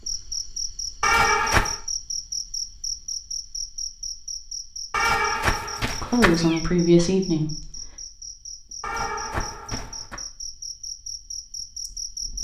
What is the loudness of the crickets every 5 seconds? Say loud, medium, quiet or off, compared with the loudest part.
loud, medium, loud.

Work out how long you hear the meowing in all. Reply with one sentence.
The meowing can be heard for 4 seconds in total.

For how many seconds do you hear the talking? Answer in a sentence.
The talking can be heard for 2 seconds in total.